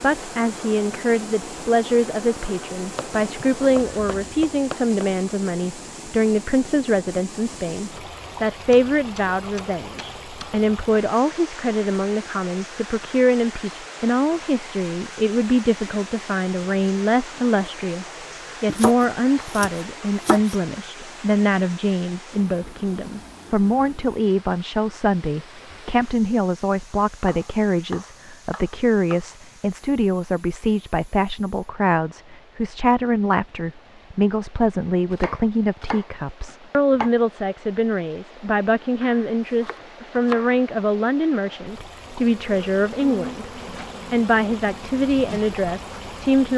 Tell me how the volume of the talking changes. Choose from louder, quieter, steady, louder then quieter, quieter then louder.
steady.